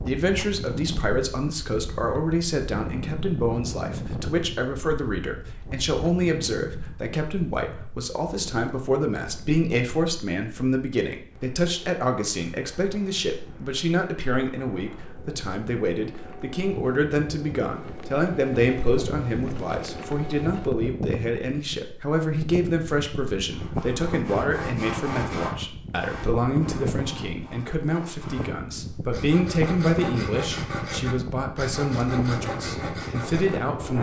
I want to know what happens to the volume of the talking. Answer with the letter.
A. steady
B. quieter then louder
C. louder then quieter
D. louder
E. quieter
A.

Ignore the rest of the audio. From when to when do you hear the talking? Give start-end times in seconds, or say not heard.
0.0-33.9.